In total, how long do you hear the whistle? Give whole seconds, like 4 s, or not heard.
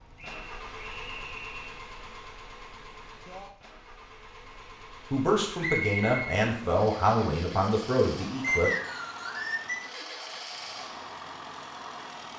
4 s.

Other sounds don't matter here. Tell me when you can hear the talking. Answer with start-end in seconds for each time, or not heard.
5.1-8.7.